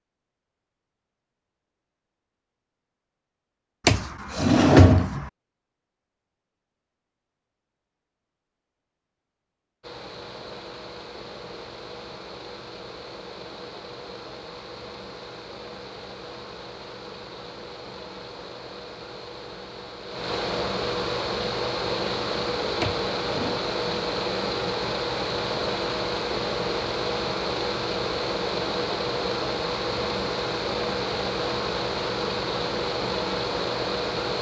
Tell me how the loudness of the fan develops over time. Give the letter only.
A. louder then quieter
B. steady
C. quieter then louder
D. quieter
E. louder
E.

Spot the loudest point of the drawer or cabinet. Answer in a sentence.
The volume of the drawer or cabinet peaks at 5 seconds.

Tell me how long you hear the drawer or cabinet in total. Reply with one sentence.
You can hear the drawer or cabinet for 2 seconds altogether.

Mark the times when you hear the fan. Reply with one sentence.
The fan can be heard from 9.8 to 34.3 s.